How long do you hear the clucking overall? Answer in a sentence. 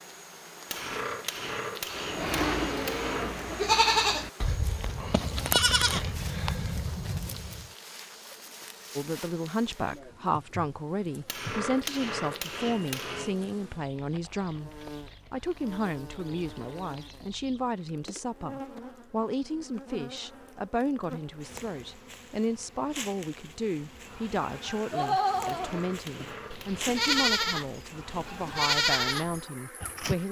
You can't hear the clucking here.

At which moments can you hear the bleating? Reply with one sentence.
The bleating can be heard from 1.9 to 7.7 s and from 24.9 to 30.1 s.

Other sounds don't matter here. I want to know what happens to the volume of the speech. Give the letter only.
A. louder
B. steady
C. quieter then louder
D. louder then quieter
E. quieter
B.